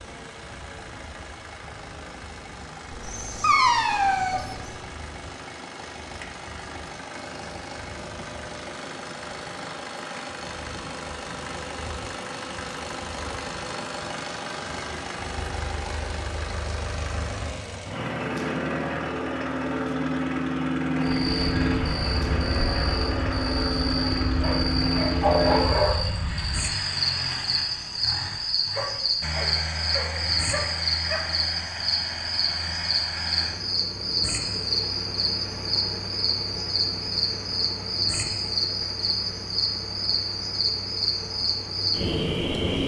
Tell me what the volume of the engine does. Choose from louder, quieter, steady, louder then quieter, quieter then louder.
louder then quieter.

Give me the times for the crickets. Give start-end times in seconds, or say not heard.
21.0-42.8.